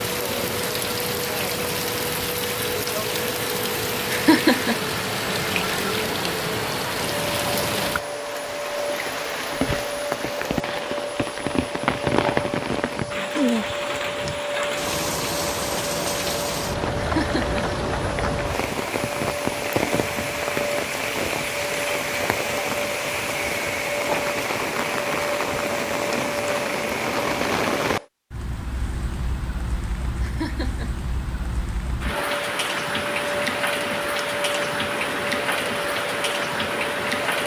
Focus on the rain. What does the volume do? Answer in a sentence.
The volume of the rain stays about the same.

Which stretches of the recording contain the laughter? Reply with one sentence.
The laughter can be heard from 4.1 to 5.0 s, from 16.9 to 17.6 s and from 30.2 to 31.1 s.